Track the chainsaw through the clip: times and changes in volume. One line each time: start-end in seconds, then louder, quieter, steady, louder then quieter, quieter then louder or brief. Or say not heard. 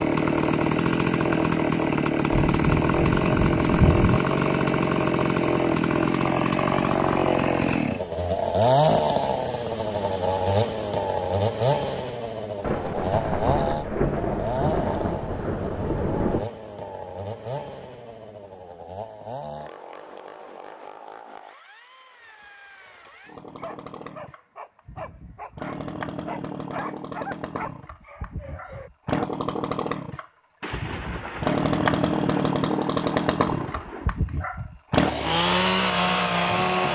0.0-36.9 quieter then louder.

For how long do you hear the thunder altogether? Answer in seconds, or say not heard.
9 s.